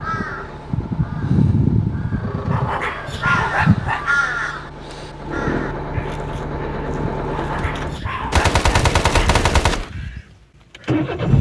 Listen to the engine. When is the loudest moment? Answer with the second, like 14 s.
11 s.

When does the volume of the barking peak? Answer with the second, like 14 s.
3 s.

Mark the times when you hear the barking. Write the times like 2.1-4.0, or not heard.
2.5-4.2, 7.3-9.3.